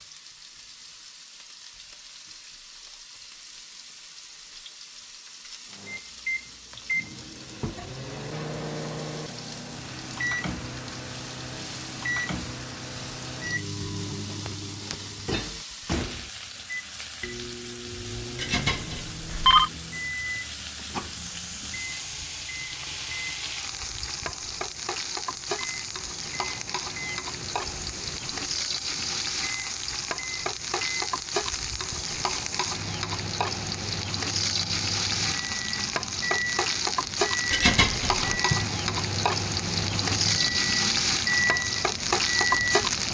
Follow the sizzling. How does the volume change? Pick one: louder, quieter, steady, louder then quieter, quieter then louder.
louder.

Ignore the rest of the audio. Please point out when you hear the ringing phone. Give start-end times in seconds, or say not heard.
18.4-19.7, 37.5-38.3.